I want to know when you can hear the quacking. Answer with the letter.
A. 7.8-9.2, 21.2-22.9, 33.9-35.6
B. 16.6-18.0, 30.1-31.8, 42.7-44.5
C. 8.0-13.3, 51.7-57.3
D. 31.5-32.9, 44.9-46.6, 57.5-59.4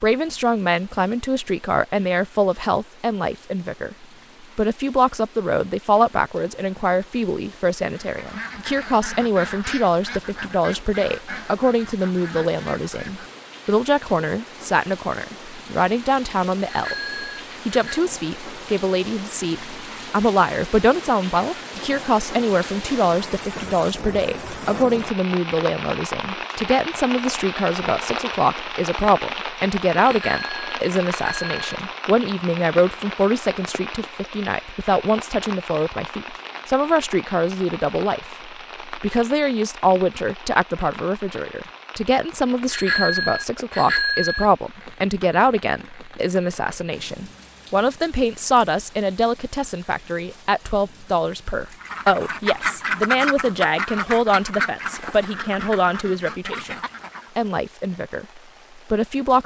C.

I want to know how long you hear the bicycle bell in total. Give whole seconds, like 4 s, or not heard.
5 s.